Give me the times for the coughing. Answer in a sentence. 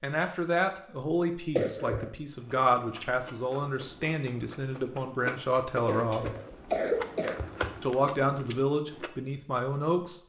The coughing can be heard from 1.6 to 2.1 s and from 5.8 to 7.8 s.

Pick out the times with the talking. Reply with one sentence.
You can hear the talking from 0.0 to 6.2 s and from 7.8 to 10.2 s.